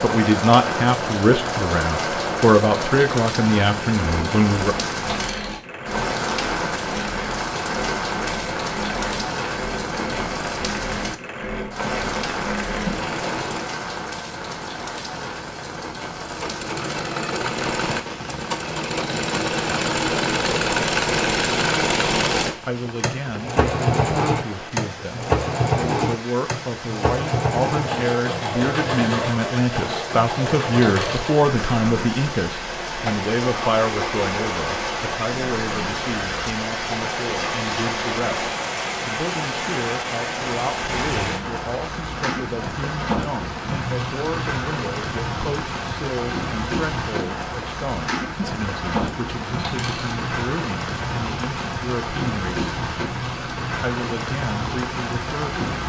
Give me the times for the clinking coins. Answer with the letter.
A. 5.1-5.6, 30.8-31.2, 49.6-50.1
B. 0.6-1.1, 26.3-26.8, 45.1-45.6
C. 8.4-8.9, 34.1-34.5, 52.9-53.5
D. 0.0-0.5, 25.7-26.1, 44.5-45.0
A.